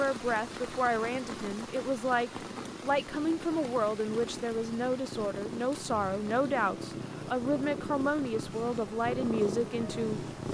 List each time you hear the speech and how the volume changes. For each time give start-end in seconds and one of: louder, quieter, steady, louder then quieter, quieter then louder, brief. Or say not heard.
0.0-10.2 steady.